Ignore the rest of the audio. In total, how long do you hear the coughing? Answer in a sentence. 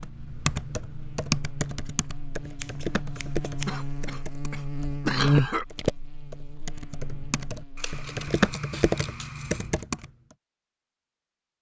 You can hear the coughing for 2 seconds altogether.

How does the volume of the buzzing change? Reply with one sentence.
The volume of the buzzing goes up, then down.